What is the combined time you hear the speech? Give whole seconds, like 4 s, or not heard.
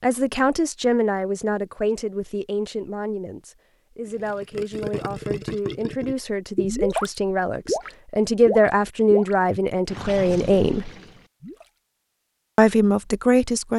12 s.